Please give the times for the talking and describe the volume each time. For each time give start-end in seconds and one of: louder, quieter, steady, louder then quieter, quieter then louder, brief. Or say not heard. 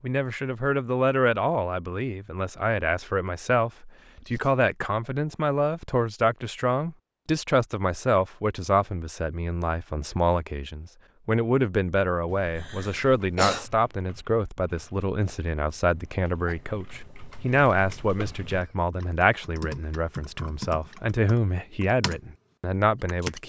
0.0-23.4 steady.